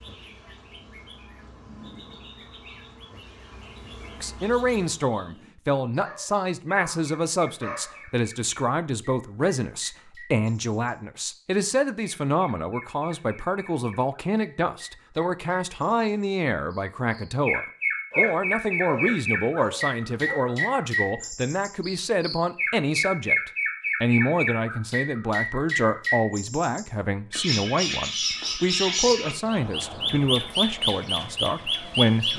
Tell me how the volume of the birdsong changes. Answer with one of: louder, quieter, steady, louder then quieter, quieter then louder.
louder.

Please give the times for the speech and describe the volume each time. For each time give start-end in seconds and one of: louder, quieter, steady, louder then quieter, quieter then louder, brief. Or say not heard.
4.2-32.3 steady.